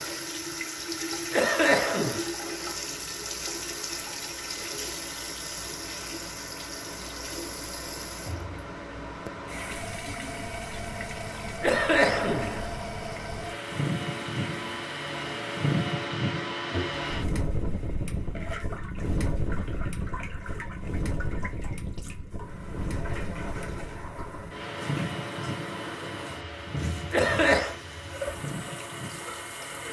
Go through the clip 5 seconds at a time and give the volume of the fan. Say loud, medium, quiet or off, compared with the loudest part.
quiet, medium, loud, loud, medium, medium.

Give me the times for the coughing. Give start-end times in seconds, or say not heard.
1.3-2.2, 11.6-12.7, 27.1-27.8.